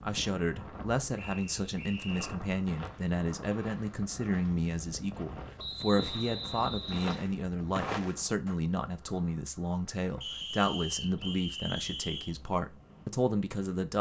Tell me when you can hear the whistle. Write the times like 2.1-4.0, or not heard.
1.1-2.4, 5.5-7.2, 10.2-12.3.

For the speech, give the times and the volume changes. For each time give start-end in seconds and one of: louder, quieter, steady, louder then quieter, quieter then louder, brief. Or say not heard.
0.0-13.9 steady.